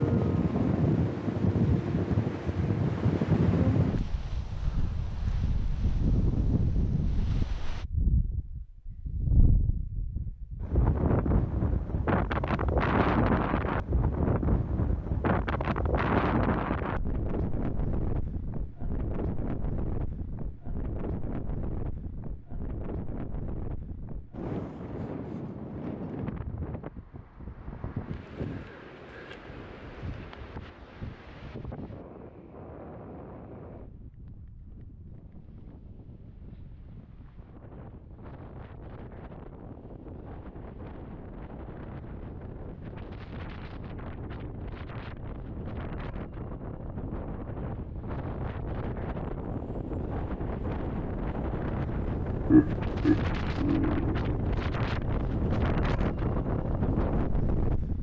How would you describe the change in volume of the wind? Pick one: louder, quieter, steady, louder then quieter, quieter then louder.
quieter then louder.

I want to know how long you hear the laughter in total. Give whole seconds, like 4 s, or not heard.
2 s.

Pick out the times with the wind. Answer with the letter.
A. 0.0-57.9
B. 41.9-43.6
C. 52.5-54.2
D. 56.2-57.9
A.